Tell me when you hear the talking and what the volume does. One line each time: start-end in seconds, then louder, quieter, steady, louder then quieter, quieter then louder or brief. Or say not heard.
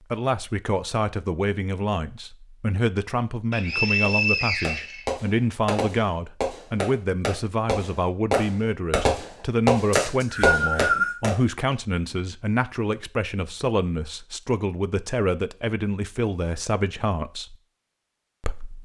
0.1-17.6 steady
18.4-18.8 brief.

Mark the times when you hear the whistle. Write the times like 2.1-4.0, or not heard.
3.5-5.0, 9.9-11.2.